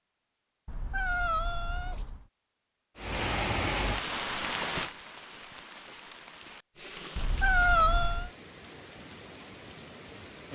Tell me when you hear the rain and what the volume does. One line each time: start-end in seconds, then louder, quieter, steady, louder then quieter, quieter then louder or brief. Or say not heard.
3.0-10.5 quieter.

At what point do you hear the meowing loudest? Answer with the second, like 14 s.
8 s.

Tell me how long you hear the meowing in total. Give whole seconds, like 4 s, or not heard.
3 s.